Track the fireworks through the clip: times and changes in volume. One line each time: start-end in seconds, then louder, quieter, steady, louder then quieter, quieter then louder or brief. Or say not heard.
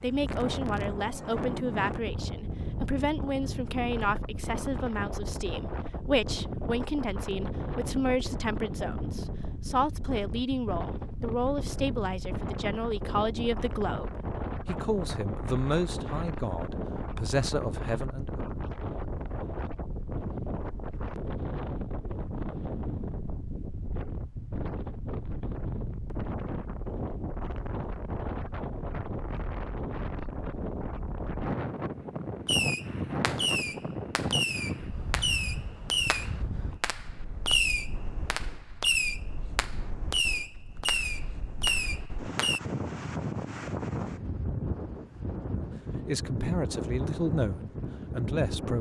32.5-42.6 steady.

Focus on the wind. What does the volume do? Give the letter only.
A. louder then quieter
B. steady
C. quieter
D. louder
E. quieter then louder
B.